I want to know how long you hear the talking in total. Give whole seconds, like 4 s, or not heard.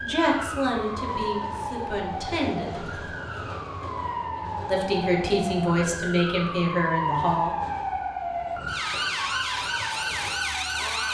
6 s.